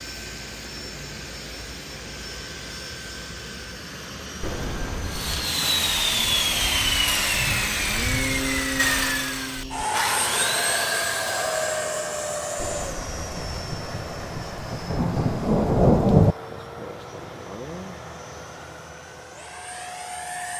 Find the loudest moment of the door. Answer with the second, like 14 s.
5 s.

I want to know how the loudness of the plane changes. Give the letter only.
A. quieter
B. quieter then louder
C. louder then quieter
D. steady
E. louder
C.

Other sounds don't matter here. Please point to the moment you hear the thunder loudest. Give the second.
16 s.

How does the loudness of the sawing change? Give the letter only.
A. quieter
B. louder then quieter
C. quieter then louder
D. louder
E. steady
A.